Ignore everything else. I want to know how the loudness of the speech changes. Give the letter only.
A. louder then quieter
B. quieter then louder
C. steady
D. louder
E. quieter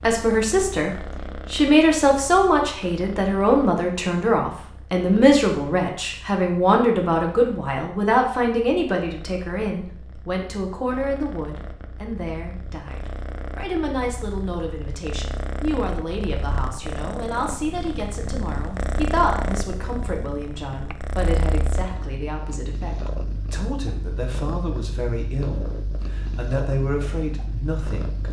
E.